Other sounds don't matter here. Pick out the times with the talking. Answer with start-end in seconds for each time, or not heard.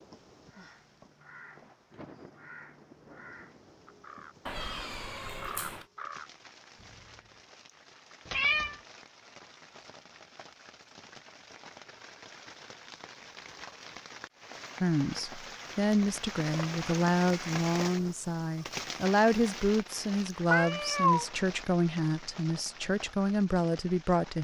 14.8-24.3.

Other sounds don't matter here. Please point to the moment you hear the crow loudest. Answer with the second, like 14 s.
6 s.